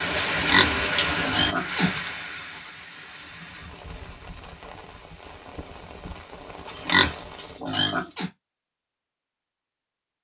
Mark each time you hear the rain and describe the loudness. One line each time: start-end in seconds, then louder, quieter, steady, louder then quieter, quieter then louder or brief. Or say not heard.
0.0-7.6 quieter.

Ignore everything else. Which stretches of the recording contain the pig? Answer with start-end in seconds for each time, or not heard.
0.3-2.1, 6.7-8.3.